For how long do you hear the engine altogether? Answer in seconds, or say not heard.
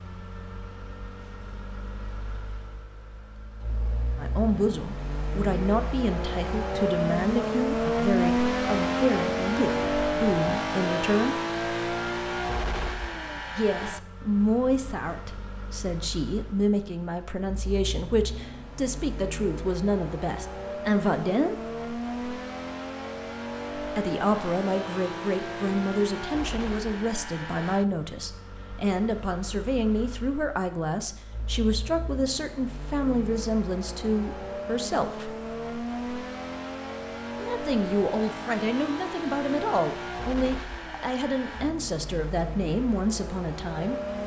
44 s.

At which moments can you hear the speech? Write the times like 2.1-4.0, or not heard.
4.2-11.4, 13.5-21.6, 23.9-35.3, 37.4-44.2.